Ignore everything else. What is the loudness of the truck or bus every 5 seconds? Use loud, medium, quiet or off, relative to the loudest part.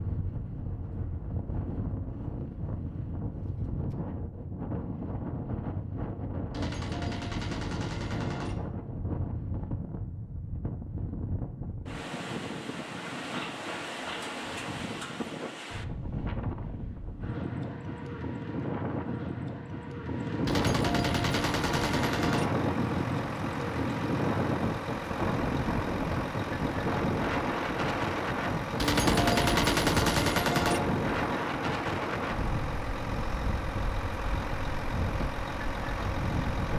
off, off, off, off, loud, loud, loud, loud.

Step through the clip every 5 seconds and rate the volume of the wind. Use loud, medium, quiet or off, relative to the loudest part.
medium, medium, medium, medium, loud, loud, loud, medium.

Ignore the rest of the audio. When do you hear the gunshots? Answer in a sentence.
The gunshots can be heard from 6.5 to 8.6 s, from 20.4 to 22.5 s and from 28.8 to 30.8 s.